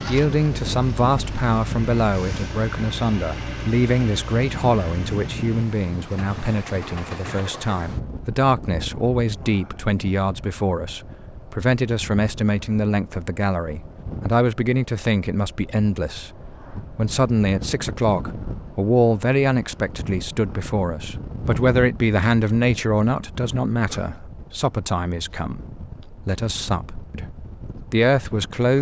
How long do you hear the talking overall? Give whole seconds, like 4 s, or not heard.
29 s.